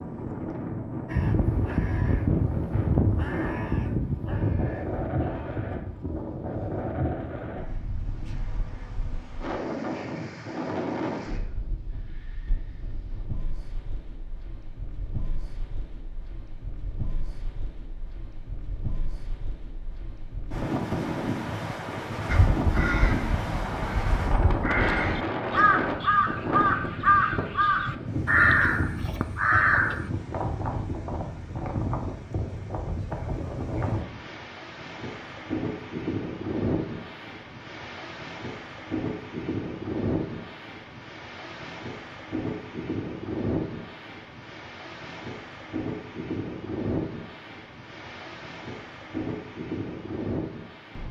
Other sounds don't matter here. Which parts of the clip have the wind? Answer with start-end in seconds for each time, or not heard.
0.0-51.0.